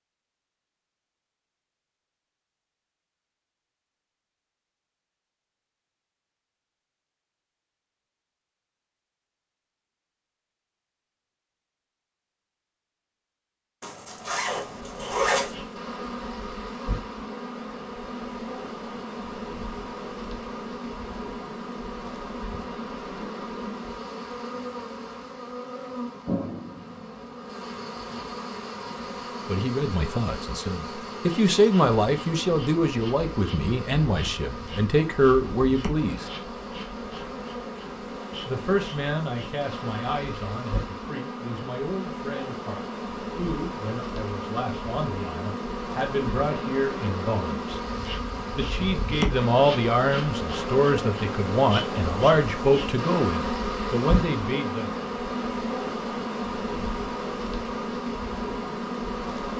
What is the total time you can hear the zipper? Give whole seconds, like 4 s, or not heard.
2 s.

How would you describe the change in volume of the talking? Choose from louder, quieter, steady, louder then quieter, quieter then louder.
quieter then louder.